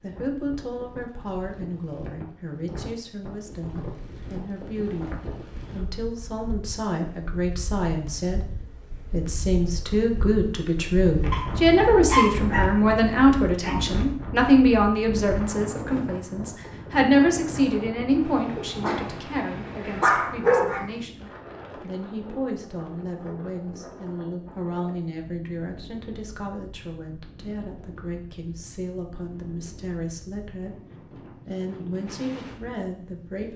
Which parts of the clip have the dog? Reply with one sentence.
The dog can be heard from 11.3 to 13.8 s and from 18.2 to 20.9 s.